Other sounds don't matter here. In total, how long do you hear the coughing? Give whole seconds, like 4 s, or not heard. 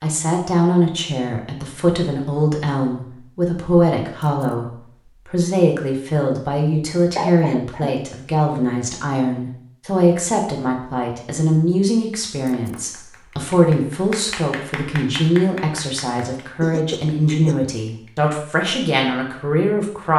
2 s.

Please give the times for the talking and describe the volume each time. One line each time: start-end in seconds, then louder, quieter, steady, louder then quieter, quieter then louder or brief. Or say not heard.
0.0-20.1 steady.